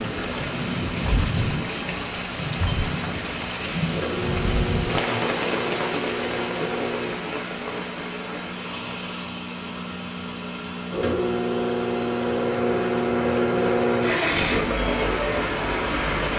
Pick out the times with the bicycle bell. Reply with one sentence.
You can hear the bicycle bell from 2.4 to 2.9 s, from 5.8 to 6.4 s and from 11.9 to 12.6 s.